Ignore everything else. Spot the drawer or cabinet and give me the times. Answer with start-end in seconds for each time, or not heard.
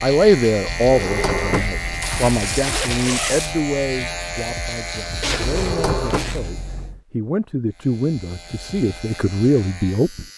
0.7-2.3, 5.4-7.0.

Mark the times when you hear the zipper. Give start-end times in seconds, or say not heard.
2.0-3.6, 5.2-6.4.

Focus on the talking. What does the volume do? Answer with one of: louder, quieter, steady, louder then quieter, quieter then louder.
quieter then louder.